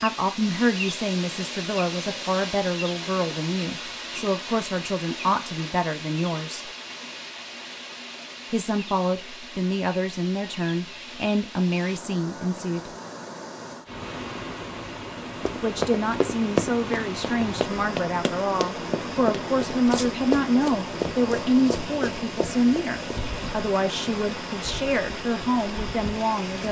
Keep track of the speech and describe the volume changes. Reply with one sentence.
The volume of the speech stays about the same.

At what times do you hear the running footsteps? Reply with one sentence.
You can hear the running footsteps from 15.4 to 23.2 s.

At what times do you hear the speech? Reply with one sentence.
You can hear the speech from 0.0 to 6.7 s, from 8.5 to 12.9 s and from 15.6 to 26.6 s.